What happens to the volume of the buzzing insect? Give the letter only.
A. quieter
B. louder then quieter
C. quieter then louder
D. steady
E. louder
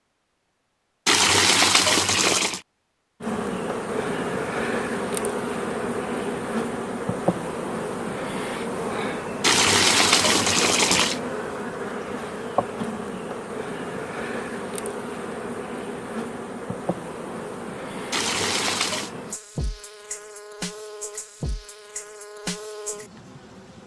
A.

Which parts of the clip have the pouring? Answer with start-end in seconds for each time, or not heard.
1.1-2.6, 9.4-11.2, 18.1-19.1.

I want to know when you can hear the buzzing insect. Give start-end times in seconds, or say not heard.
3.2-23.8.